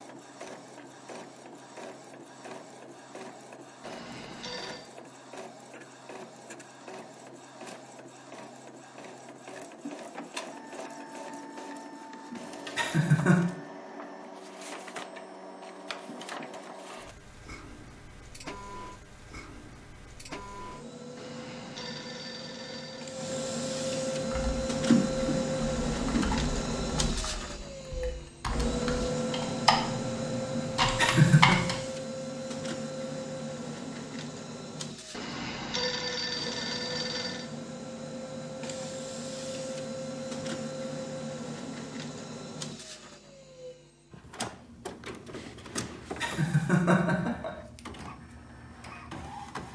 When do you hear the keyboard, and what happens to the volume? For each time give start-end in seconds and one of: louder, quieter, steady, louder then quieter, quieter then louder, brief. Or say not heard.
24.2-31.8 quieter then louder.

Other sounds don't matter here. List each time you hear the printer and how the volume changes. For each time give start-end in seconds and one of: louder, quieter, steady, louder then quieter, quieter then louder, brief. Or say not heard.
0.0-49.7 louder then quieter.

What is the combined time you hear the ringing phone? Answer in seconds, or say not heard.
5 s.